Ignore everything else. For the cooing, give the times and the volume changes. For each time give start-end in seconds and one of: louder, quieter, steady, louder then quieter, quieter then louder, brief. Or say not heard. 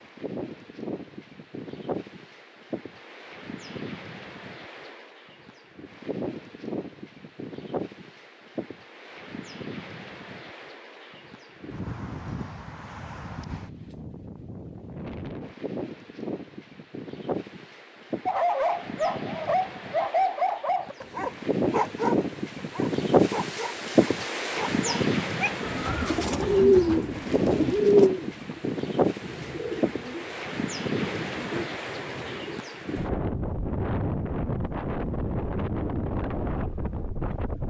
25.6-32.6 quieter.